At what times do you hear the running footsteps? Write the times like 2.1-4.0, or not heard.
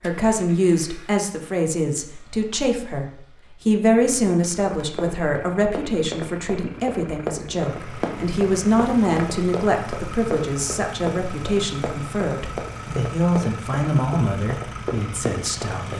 4.8-15.9.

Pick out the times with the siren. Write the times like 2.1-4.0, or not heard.
not heard.